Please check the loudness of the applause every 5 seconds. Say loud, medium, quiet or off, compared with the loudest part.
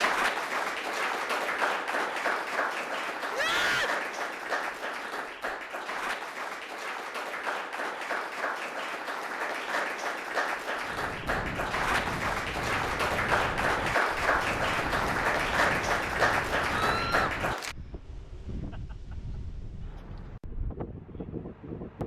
loud, medium, loud, loud, off.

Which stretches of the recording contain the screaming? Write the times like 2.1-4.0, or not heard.
3.3-4.0, 16.8-17.4.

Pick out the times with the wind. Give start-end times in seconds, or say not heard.
10.8-22.0.